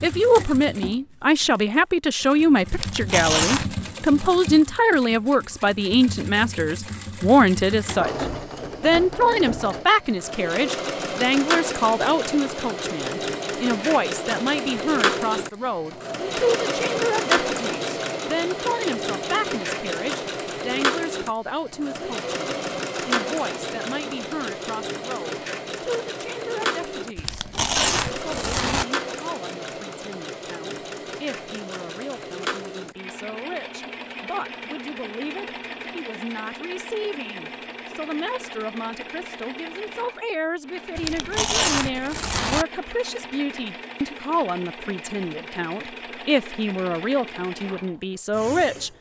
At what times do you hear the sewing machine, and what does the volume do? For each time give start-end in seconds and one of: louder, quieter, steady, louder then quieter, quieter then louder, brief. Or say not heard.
0.0-48.9 louder then quieter.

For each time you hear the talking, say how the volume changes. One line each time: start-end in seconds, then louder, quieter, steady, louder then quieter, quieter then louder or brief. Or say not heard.
0.0-48.9 quieter then louder.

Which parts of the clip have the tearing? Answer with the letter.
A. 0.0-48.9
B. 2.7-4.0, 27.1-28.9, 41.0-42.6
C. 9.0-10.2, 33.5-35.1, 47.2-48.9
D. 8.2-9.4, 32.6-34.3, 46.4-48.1
B.